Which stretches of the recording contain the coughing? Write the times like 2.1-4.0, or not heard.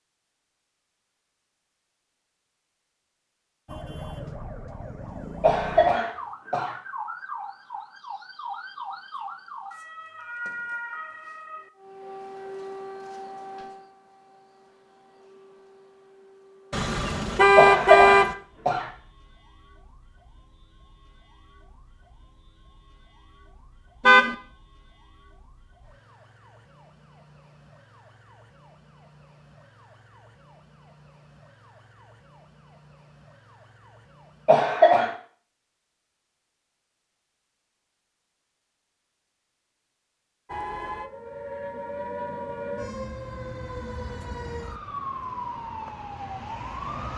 5.4-6.8, 17.6-18.9, 34.5-35.1.